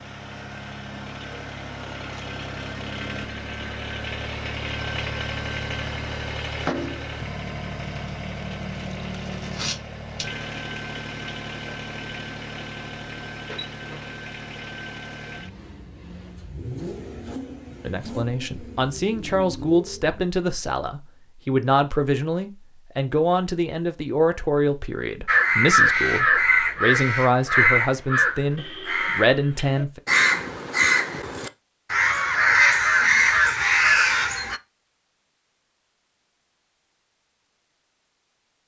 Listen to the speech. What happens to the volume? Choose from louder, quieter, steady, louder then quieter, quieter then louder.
steady.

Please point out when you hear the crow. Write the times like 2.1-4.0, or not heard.
25.2-34.6.